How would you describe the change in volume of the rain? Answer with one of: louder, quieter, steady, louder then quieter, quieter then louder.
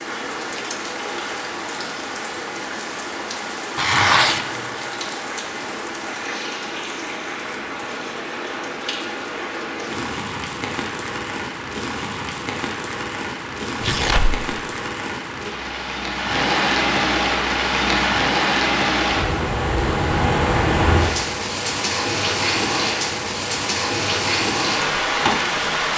louder.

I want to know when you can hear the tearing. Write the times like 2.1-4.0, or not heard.
3.8-4.6, 13.8-14.4.